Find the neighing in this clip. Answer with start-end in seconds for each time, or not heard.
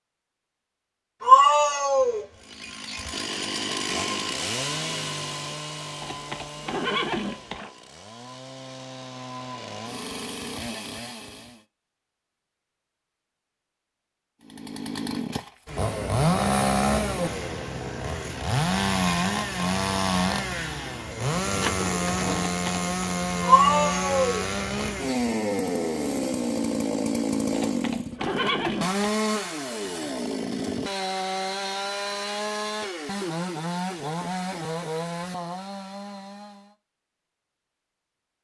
6.0-7.7, 22.4-22.9, 27.5-29.1.